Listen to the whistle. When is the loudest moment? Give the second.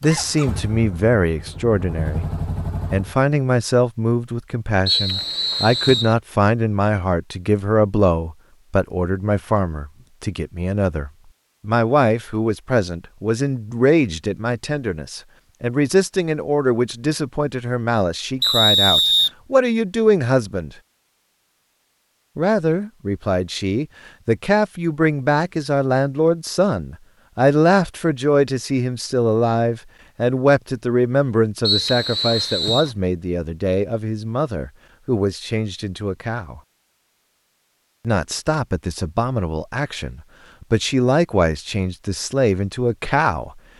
19 s.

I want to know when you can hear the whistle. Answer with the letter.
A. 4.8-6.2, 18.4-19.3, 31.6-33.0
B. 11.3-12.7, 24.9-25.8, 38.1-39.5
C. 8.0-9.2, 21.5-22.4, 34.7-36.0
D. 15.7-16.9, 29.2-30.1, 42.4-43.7
A.